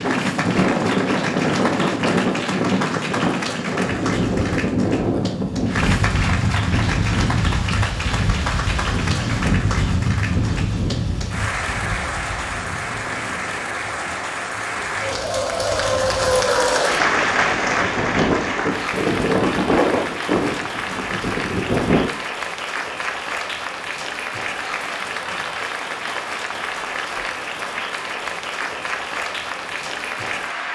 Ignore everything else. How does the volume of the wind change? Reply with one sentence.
The loudness of the wind goes down, then up.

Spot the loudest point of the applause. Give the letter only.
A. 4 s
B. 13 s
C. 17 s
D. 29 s
C.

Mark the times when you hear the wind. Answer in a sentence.
The wind can be heard from 0.0 to 22.1 s.